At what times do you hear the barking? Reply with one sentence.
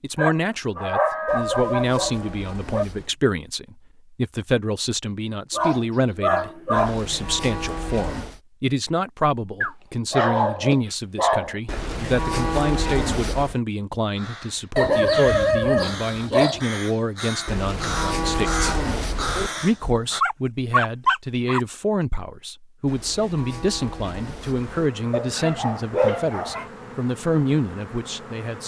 The barking can be heard from 0.1 to 2.9 s, from 5.5 to 7.0 s, from 9.6 to 11.6 s, from 14.8 to 16.6 s, from 20.2 to 21.6 s and from 25.1 to 26.6 s.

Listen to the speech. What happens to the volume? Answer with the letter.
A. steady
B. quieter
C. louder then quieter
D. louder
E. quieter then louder
A.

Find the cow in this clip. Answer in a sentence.
The cow can be heard from 1.2 to 3.1 s, from 6.8 to 8.4 s, from 11.7 to 13.6 s, from 17.4 to 19.5 s and from 22.9 to 24.9 s.